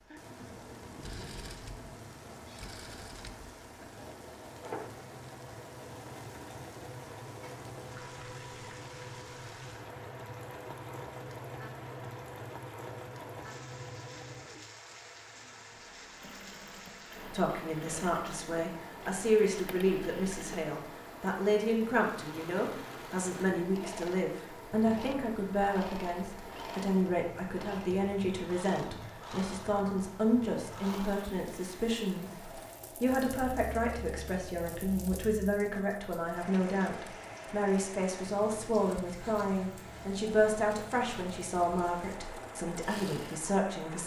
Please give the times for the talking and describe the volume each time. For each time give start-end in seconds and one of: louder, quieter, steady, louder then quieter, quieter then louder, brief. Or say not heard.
17.3-44.0 steady.